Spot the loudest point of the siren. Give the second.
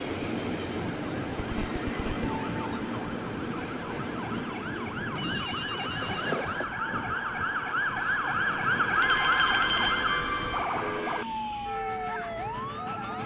9 s.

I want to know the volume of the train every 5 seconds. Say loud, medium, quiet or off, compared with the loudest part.
loud, medium, medium.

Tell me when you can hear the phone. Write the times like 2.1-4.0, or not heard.
1.4-2.3, 5.2-6.7, 9.0-10.7.